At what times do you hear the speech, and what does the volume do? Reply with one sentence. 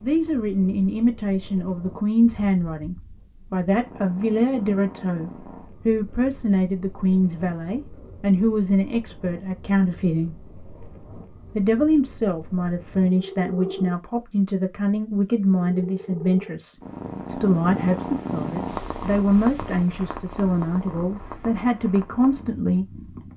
You can hear the speech from 0.0 to 10.3 s, at a steady volume; and from 11.6 to 23.3 s, at a steady volume.